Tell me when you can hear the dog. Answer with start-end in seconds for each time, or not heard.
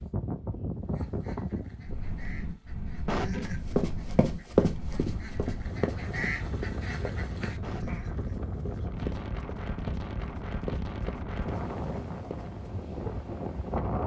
not heard.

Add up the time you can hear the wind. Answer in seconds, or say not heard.
14 s.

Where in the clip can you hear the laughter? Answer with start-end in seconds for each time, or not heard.
3.0-3.6, 7.6-8.3.